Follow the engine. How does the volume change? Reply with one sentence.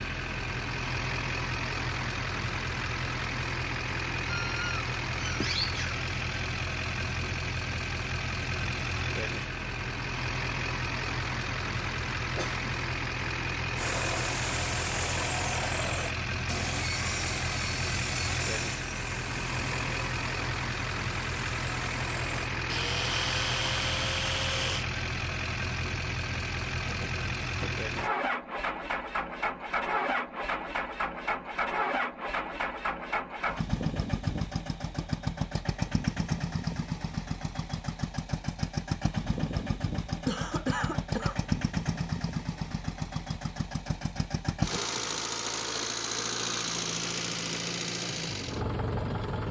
The volume of the engine stays about the same.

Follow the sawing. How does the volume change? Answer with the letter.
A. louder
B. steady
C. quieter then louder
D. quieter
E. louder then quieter
C.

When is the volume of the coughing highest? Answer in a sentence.
The loudest moment of the coughing is at 41 seconds.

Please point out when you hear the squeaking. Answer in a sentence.
The squeaking can be heard from 4.2 to 6.0 s.